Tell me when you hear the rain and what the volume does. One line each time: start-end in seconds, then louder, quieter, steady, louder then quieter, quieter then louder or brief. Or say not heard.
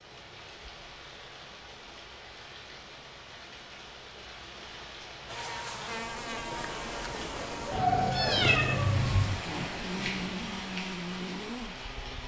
0.0-12.2 louder.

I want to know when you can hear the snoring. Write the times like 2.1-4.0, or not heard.
not heard.